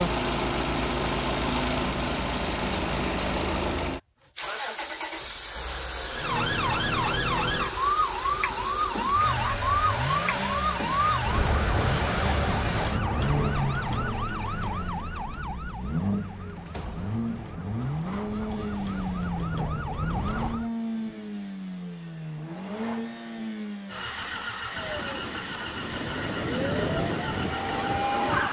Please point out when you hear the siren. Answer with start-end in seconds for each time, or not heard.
6.1-20.7, 24.7-28.4.